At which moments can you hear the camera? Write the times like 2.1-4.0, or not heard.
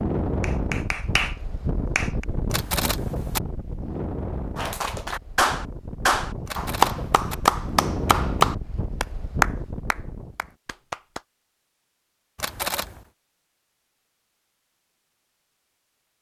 2.5-3.4, 6.5-7.3, 12.3-13.1.